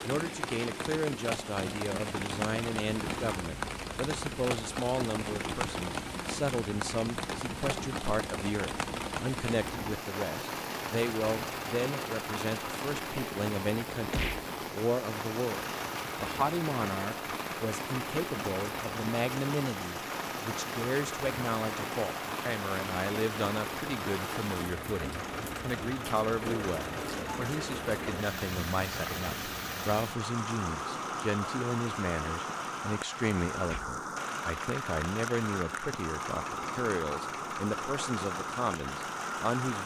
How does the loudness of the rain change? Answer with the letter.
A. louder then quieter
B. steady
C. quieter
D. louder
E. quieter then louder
B.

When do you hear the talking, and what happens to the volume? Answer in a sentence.
The talking can be heard from 0.0 to 39.8 s, at a steady volume.